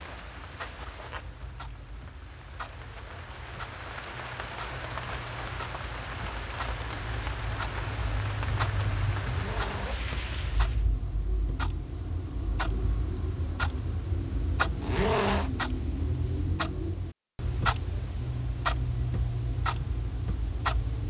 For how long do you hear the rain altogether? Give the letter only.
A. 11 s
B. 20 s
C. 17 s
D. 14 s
A.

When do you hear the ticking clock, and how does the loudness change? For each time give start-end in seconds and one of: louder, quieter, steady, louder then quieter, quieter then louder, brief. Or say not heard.
0.0-21.0 louder.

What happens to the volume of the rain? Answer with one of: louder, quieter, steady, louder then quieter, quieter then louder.
louder.